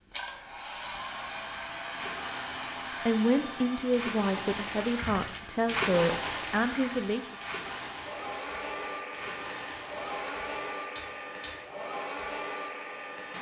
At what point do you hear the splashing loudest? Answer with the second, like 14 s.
6 s.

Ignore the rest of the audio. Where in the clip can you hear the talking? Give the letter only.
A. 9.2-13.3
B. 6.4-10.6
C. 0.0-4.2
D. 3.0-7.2
D.